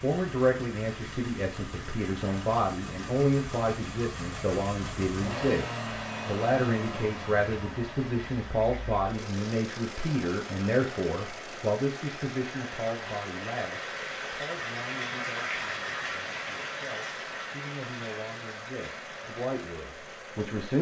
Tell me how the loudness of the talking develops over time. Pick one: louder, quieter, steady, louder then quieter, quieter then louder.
quieter.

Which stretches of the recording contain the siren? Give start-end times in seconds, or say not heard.
not heard.